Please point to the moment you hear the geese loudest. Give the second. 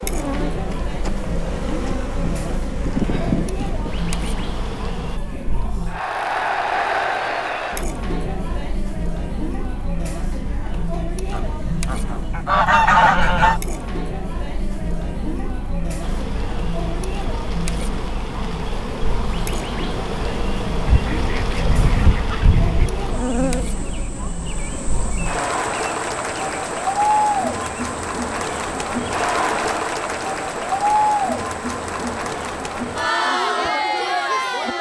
13 s.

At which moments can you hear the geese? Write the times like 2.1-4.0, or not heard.
11.3-13.6, 20.9-22.9.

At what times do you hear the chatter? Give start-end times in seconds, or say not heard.
0.0-34.7.